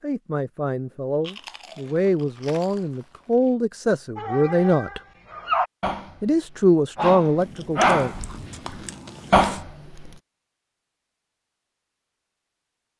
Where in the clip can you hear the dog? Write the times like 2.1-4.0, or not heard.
4.2-6.2, 7.0-10.1.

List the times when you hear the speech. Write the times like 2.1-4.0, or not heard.
0.0-5.0, 6.2-8.2.